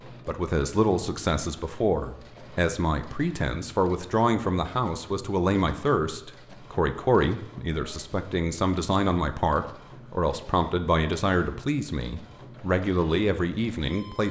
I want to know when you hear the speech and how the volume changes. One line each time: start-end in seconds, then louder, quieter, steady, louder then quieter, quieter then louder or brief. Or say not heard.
0.2-14.2 steady.